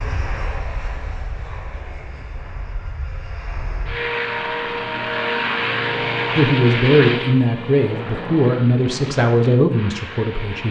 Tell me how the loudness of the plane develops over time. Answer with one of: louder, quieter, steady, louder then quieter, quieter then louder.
louder then quieter.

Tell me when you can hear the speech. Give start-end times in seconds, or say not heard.
6.3-10.6.